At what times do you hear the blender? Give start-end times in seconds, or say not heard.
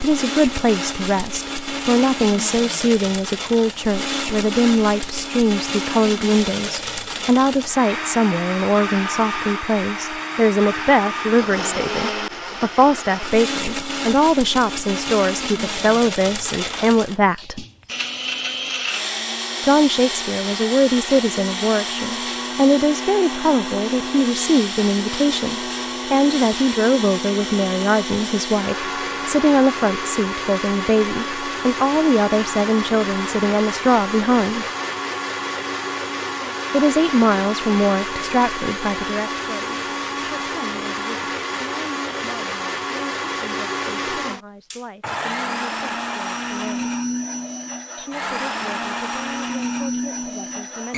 0.0-50.9.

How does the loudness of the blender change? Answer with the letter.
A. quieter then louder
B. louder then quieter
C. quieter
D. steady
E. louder
D.